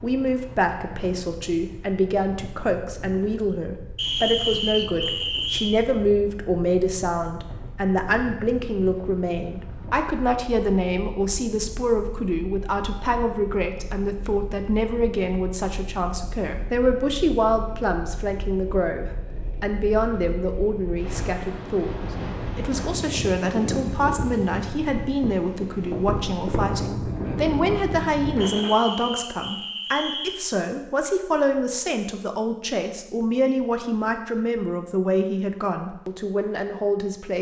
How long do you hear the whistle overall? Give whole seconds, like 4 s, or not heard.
4 s.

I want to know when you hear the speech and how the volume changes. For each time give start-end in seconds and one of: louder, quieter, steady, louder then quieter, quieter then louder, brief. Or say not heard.
0.0-37.3 steady.